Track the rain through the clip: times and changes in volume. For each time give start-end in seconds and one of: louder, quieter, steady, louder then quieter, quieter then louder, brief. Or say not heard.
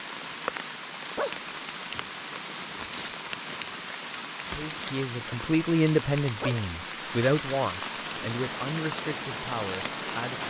0.0-10.4 steady.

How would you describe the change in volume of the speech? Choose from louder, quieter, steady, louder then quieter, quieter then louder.
quieter.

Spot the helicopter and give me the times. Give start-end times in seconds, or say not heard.
7.8-10.4.